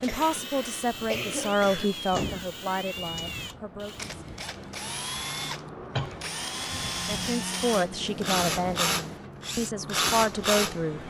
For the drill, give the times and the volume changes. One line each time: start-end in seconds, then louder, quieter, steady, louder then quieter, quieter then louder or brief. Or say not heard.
0.0-11.0 louder.